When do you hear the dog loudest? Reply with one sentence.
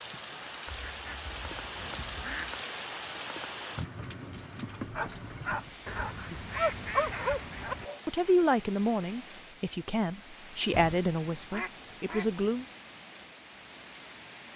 The loudest moment of the dog is at 7 seconds.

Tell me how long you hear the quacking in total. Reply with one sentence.
You can hear the quacking for 6 seconds altogether.